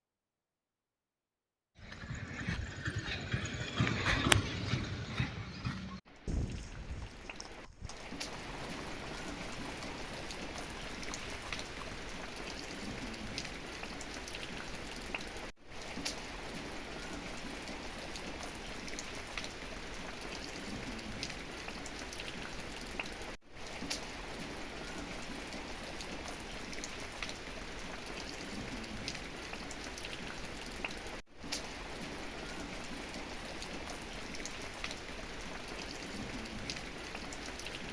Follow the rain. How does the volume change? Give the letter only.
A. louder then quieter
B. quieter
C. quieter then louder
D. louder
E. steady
E.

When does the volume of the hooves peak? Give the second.
4 s.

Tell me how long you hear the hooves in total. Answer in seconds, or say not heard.
10 s.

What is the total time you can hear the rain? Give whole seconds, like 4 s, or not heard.
32 s.